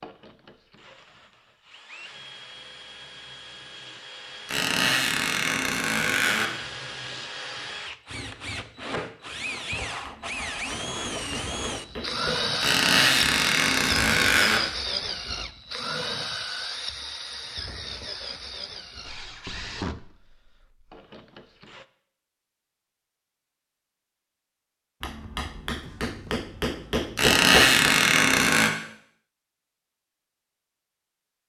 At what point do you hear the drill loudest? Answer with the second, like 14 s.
13 s.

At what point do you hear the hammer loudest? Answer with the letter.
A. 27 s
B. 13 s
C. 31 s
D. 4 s
A.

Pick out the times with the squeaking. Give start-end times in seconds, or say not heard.
4.5-6.5, 12.6-14.6, 27.1-28.7.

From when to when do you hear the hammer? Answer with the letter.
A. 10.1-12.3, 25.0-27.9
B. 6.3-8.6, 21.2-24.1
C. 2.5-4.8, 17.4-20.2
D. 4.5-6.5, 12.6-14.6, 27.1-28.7
A.